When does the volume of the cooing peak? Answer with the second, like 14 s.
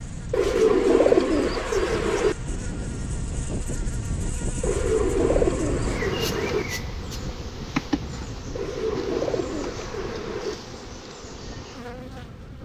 1 s.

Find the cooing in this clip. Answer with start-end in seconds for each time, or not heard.
0.3-2.4, 4.6-6.7, 8.6-10.6.